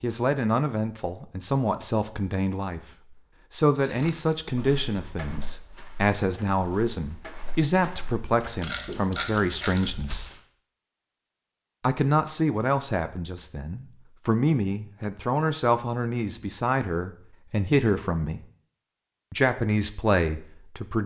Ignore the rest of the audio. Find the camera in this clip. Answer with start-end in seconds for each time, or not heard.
8.6-10.0.